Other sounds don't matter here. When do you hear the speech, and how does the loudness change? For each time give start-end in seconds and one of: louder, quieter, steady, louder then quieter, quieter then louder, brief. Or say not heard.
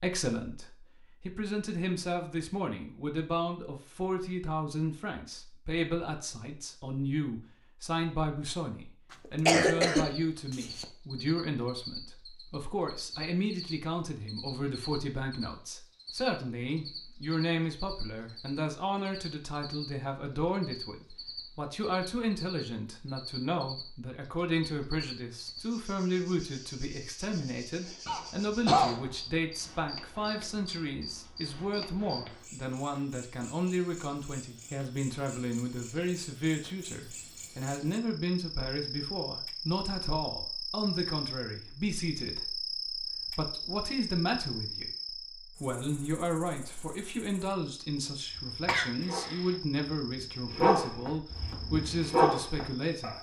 0.0-53.1 steady.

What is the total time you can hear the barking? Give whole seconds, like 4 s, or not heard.
5 s.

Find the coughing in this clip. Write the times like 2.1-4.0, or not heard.
9.1-10.8, 28.1-29.1, 48.6-49.4.